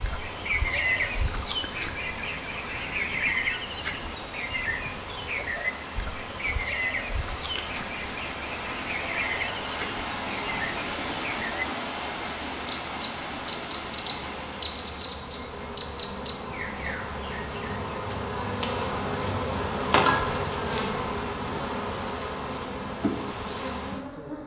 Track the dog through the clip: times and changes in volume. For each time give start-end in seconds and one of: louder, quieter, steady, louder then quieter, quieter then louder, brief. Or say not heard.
not heard.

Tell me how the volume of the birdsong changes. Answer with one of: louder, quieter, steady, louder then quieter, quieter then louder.
quieter.